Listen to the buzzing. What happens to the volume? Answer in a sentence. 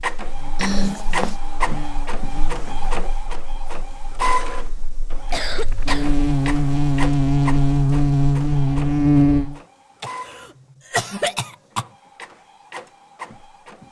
The volume of the buzzing goes down, then up.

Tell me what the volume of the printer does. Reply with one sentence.
The volume of the printer goes down.